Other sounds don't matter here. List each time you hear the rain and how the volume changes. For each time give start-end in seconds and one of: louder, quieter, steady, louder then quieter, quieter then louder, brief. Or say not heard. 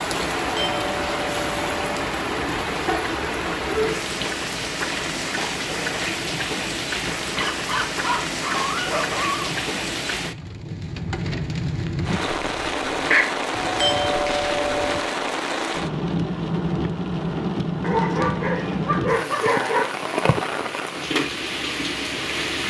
0.0-22.6 steady.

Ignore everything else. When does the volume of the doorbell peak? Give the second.
14 s.